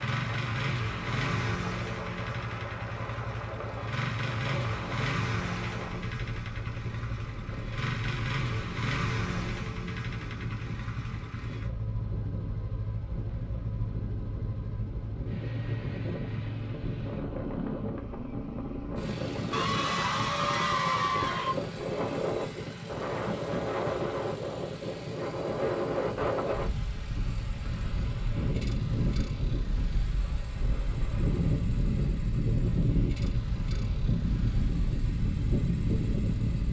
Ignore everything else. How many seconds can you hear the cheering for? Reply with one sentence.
You can hear the cheering for 2 seconds altogether.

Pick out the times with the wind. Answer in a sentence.
You can hear the wind from 0.0 to 36.6 s.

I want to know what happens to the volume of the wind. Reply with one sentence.
The loudness of the wind goes up.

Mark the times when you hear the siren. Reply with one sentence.
The siren can't be heard in this clip.